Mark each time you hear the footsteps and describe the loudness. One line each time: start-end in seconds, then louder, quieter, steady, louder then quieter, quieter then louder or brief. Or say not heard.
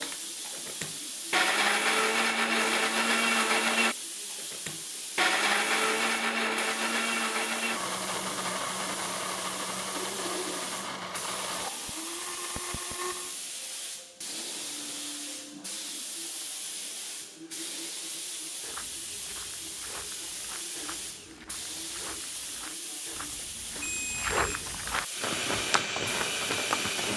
18.6-27.1 louder.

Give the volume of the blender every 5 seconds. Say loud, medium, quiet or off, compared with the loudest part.
loud, loud, medium, off, off, medium.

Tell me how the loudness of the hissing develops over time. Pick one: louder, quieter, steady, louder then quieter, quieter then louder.
steady.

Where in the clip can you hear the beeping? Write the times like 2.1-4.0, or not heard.
23.1-24.7.